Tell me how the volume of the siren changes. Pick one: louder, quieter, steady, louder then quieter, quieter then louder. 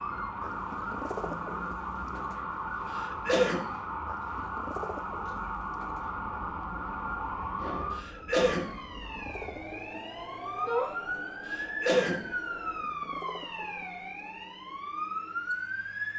steady.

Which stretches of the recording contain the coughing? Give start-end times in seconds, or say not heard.
2.9-3.8, 7.9-8.8, 11.4-12.3.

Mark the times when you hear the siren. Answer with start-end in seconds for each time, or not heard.
0.0-16.1.